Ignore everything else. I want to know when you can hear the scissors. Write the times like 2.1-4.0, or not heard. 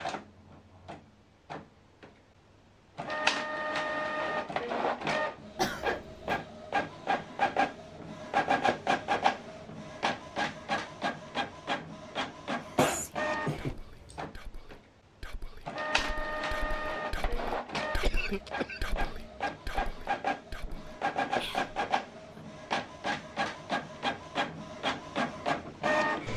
not heard.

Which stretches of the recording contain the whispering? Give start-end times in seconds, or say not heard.
12.8-22.4.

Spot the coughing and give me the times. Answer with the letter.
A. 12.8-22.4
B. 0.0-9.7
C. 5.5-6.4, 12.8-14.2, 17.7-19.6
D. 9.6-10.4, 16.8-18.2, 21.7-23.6
C.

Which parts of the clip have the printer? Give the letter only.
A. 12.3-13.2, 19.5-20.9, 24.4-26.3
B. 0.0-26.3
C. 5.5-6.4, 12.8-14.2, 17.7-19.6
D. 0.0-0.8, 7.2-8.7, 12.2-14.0
B.